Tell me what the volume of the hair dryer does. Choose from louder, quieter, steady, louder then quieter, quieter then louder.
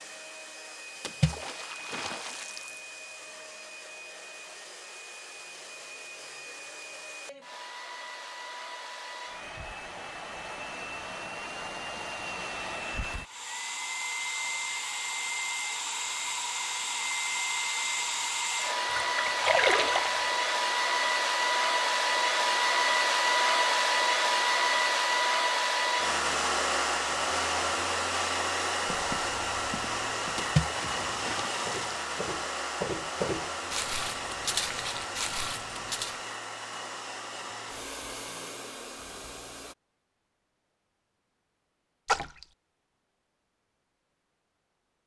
louder then quieter.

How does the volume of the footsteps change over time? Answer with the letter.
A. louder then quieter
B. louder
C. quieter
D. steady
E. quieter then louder
B.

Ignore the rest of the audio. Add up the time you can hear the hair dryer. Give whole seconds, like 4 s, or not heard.
40 s.